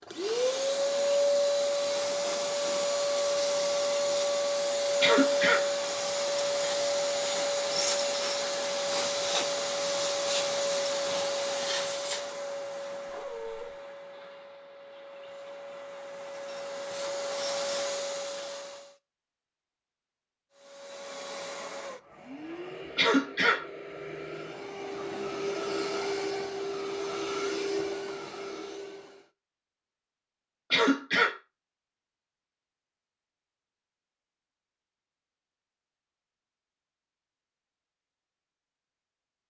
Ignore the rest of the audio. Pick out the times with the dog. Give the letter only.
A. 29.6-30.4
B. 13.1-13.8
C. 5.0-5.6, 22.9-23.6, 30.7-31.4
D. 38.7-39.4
B.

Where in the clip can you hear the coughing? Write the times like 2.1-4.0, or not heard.
5.0-5.6, 22.9-23.6, 30.7-31.4.